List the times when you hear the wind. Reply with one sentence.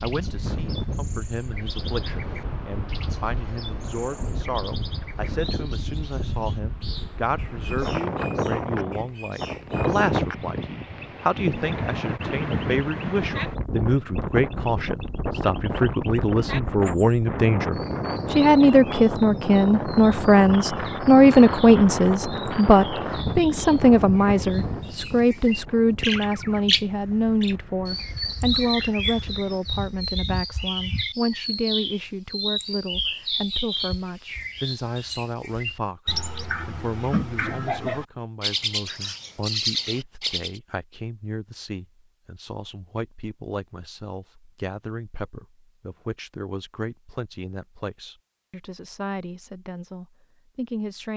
The wind can be heard from 0.0 to 29.9 s.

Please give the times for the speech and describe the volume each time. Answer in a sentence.
You can hear the speech from 0.0 to 51.1 s, getting louder then quieter.